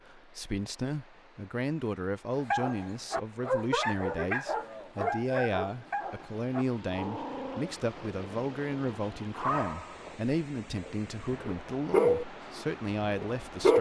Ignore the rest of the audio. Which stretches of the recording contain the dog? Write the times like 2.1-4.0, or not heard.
2.5-12.2, 13.0-13.7.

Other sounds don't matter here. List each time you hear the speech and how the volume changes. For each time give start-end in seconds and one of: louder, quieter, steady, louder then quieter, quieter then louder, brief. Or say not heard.
0.1-13.7 steady.